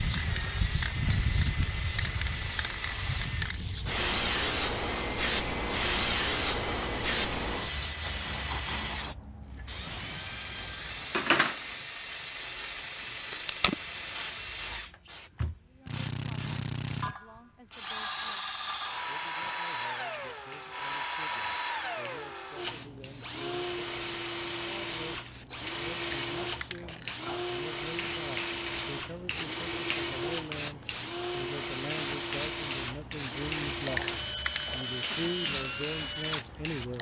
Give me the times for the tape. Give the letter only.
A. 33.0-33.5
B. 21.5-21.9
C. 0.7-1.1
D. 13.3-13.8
D.